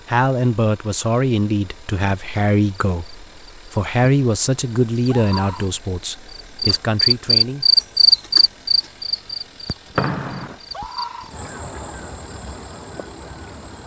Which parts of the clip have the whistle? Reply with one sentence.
The whistle can be heard from 9.9 to 10.6 s.